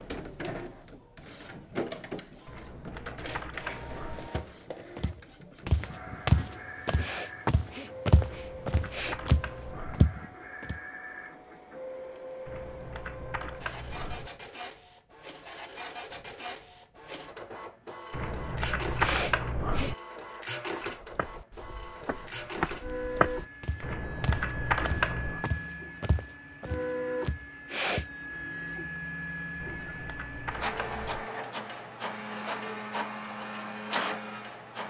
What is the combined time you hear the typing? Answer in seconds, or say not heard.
11 s.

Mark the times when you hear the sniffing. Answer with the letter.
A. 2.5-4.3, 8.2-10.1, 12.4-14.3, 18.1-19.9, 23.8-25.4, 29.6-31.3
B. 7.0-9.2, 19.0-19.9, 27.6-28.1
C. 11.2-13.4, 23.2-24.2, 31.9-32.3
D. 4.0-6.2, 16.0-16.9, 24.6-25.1
B.